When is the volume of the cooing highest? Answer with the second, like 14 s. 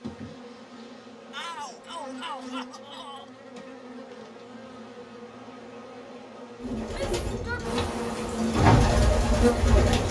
9 s.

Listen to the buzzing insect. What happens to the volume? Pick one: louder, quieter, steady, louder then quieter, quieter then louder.
louder.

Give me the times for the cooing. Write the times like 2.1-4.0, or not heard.
6.6-10.0.